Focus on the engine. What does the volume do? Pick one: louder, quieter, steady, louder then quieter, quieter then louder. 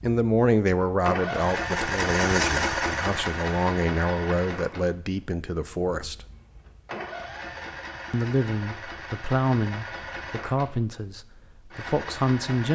quieter.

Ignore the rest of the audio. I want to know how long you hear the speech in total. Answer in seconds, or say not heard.
11 s.